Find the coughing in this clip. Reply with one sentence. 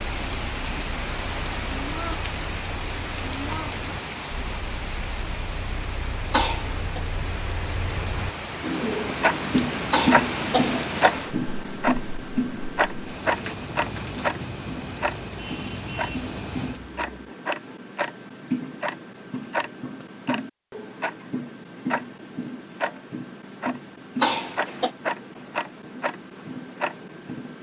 The coughing can be heard from 6.3 to 7.0 s, from 9.9 to 11.1 s and from 24.2 to 24.9 s.